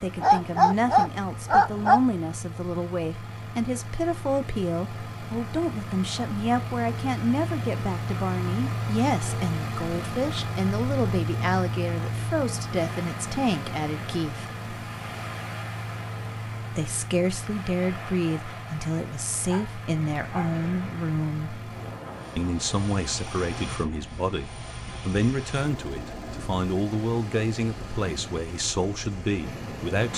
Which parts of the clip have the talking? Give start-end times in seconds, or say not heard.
0.0-14.4, 16.8-21.6, 22.4-30.1.